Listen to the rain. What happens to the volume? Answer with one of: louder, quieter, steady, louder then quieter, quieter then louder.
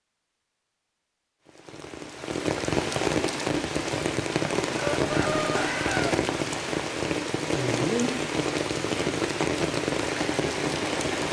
steady.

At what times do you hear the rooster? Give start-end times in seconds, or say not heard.
4.7-6.2.